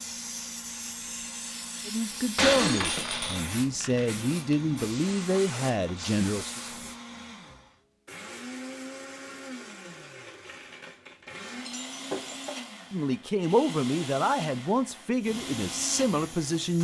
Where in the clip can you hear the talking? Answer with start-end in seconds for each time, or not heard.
1.9-6.6, 12.9-16.7.